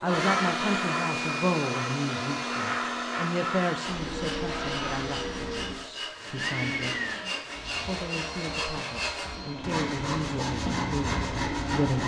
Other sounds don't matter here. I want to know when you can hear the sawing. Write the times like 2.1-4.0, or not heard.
3.6-12.0.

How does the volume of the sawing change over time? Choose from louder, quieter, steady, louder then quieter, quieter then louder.
louder.